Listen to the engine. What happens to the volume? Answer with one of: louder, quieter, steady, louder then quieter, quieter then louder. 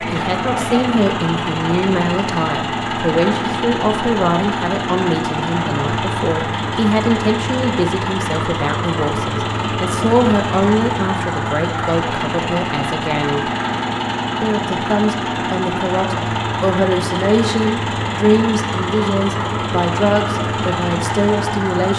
steady.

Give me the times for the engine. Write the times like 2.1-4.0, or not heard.
0.0-21.9.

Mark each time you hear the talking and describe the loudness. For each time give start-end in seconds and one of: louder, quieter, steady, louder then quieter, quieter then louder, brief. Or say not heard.
0.0-13.5 steady
14.4-21.9 steady.